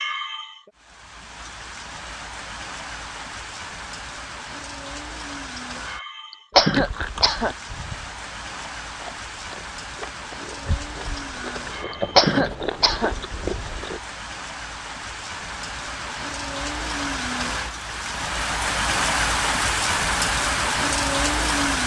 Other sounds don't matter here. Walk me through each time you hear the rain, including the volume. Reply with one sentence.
The rain can be heard from 0.0 to 21.8 s, getting louder.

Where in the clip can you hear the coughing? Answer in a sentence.
You can hear the coughing from 5.5 to 7.5 s and from 11.2 to 13.2 s.